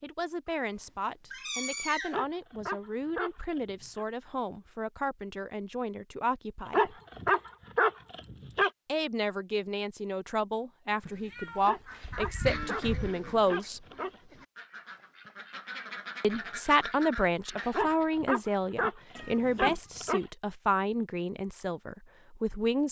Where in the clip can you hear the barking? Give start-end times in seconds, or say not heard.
2.1-4.0, 6.7-8.7, 11.7-14.2, 17.7-20.2.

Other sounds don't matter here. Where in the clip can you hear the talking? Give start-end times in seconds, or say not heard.
0.0-7.0, 8.8-13.8, 16.2-22.8.